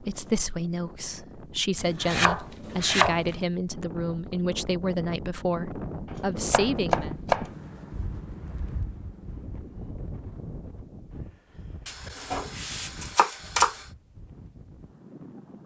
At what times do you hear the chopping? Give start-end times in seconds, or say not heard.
1.8-3.4, 6.5-7.5, 11.8-13.8.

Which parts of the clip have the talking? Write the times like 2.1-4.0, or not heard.
0.0-7.2.